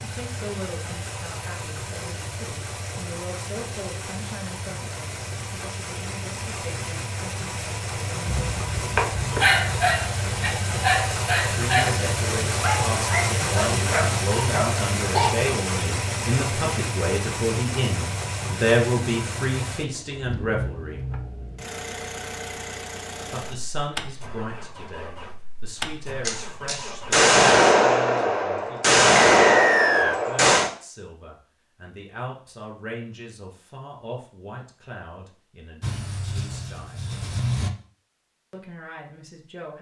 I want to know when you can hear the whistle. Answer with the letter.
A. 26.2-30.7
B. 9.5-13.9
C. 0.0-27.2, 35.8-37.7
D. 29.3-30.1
D.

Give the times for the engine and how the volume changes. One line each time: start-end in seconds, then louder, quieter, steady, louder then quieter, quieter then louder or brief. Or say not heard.
0.0-27.2 louder then quieter
35.8-37.7 brief.